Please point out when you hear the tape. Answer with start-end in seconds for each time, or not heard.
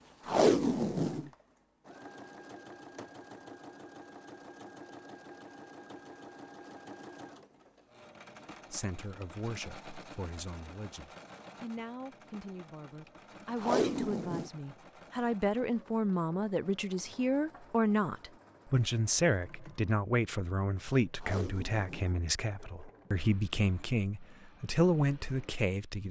0.2-1.3, 13.6-14.5, 21.1-23.1.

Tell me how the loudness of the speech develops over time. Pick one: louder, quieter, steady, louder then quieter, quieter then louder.
louder.